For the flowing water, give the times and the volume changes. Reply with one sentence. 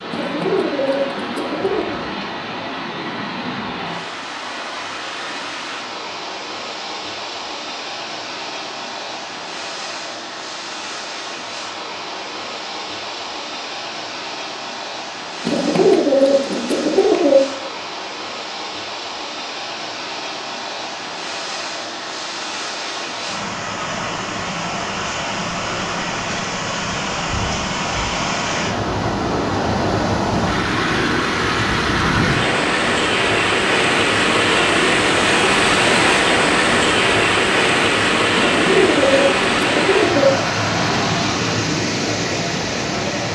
You can hear the flowing water from 0.0 to 43.2 s, getting louder.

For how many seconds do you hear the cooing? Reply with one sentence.
The cooing can be heard for 6 seconds in total.